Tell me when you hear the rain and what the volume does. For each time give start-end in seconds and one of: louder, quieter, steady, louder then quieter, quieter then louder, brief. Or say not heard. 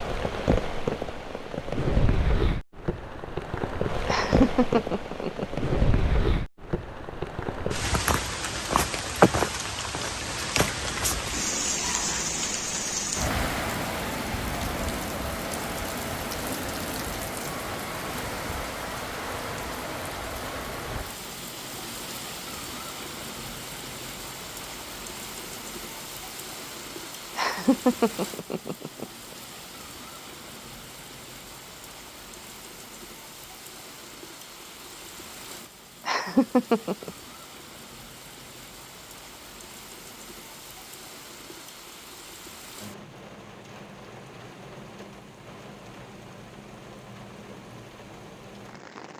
0.0-49.1 quieter.